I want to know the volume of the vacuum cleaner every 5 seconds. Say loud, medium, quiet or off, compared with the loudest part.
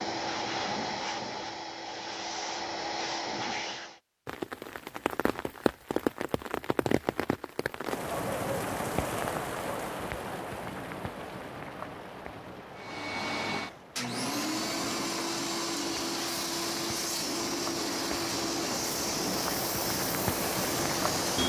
loud, off, loud, loud, loud.